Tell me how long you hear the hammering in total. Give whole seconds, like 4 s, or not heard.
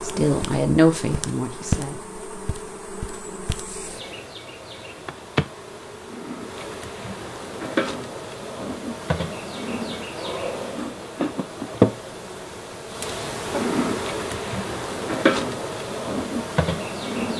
not heard.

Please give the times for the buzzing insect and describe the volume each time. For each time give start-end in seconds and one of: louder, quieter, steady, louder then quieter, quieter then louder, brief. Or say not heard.
0.0-17.3 louder.